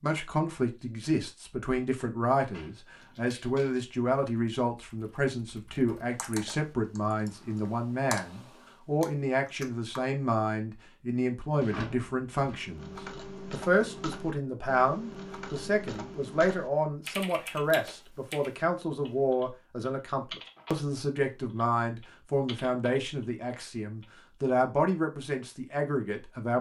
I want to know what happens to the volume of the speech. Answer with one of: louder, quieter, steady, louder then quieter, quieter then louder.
steady.